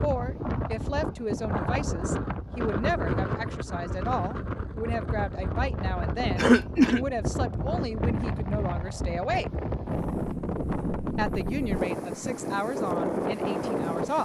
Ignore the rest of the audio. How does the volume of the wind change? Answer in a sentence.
The volume of the wind stays about the same.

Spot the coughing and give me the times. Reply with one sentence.
The coughing can be heard from 6.3 to 7.0 s.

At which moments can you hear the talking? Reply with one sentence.
You can hear the talking from 0.0 to 9.5 s and from 11.2 to 14.2 s.